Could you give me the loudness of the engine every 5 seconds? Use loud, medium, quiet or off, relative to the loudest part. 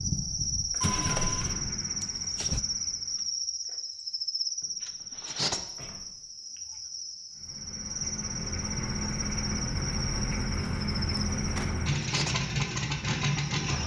medium, medium, loud.